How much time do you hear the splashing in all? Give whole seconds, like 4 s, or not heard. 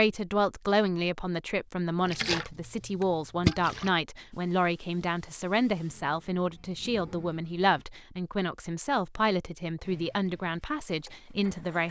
2 s.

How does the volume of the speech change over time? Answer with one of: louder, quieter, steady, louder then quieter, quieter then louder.
steady.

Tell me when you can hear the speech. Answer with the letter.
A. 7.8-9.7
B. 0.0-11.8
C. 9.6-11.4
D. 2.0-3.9
B.